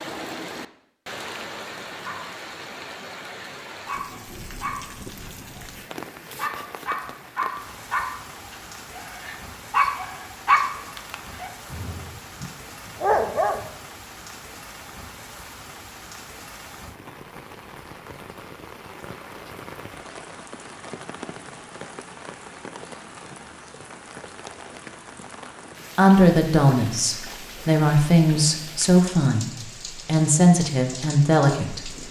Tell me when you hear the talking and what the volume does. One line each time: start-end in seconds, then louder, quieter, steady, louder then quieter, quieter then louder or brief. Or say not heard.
25.9-31.9 steady.